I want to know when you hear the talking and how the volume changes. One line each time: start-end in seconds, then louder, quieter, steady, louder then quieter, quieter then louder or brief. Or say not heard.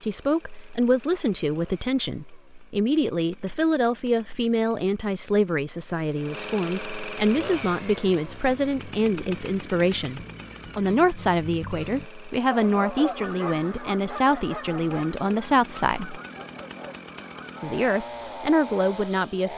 0.0-16.2 steady
17.6-19.5 brief.